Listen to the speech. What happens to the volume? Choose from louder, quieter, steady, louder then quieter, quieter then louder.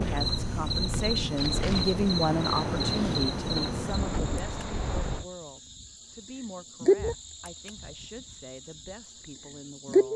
quieter.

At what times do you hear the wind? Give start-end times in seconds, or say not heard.
0.0-5.2.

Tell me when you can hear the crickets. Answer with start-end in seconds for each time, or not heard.
0.0-10.1.